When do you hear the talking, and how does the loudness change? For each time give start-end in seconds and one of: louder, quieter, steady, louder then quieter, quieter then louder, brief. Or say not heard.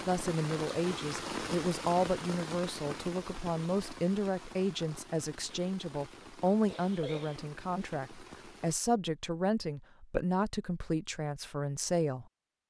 0.1-12.2 steady.